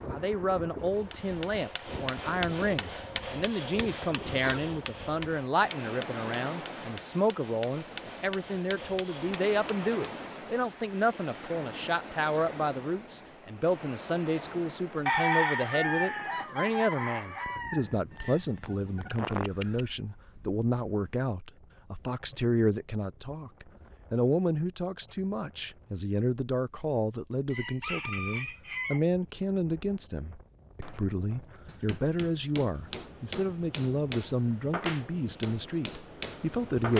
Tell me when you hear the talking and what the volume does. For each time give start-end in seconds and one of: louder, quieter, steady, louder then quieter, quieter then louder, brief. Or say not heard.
0.0-36.9 steady.